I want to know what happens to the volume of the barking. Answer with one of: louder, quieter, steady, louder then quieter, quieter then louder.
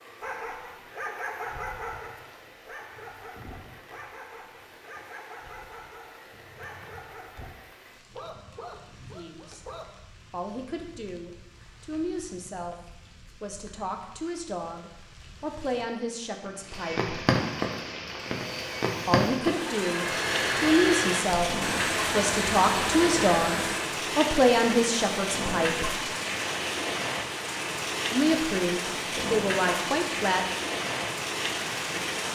quieter.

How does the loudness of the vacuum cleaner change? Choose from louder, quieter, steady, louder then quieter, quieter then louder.
louder.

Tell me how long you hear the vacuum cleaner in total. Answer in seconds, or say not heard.
6 s.